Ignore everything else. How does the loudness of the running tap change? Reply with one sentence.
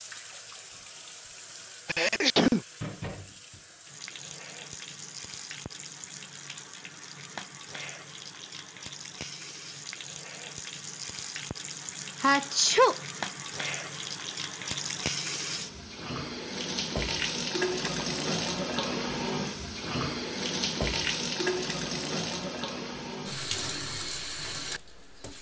The loudness of the running tap goes up.